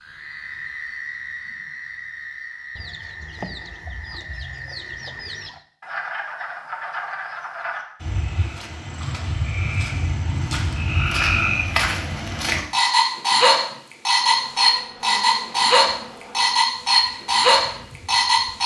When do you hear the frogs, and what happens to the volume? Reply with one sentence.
You can hear the frogs from 0.0 to 18.6 s, getting louder.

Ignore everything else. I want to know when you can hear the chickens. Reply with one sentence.
The chickens can be heard from 2.8 to 5.6 s.